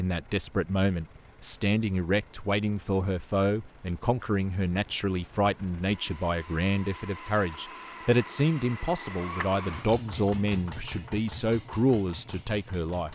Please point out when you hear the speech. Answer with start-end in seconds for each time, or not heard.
0.0-13.1.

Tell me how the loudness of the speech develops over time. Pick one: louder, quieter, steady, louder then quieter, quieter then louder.
steady.